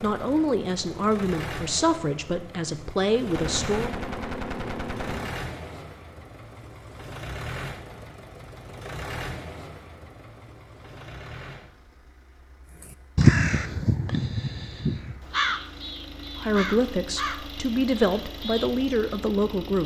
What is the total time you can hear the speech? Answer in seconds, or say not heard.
7 s.